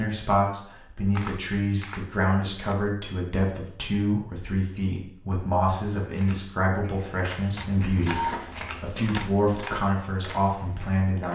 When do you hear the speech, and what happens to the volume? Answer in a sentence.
You can hear the speech from 0.0 to 11.3 s, at a steady volume.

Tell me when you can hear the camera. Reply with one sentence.
You can hear the camera from 1.1 to 2.8 s and from 7.5 to 9.8 s.